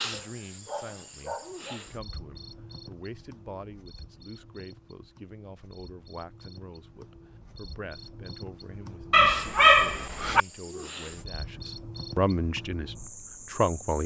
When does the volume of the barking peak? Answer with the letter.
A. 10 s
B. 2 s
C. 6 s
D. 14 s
A.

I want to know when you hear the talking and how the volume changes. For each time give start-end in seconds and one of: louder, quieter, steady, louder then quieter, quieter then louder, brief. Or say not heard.
0.0-14.0 louder.